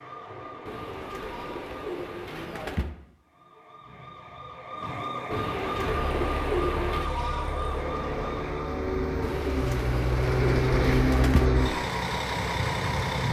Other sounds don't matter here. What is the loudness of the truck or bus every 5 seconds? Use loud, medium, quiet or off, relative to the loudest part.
off, medium, loud.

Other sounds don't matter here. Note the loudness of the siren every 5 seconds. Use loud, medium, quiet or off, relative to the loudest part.
medium, loud, off.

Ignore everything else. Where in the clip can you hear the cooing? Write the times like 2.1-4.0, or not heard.
0.7-2.9, 5.3-7.1, 9.2-11.5.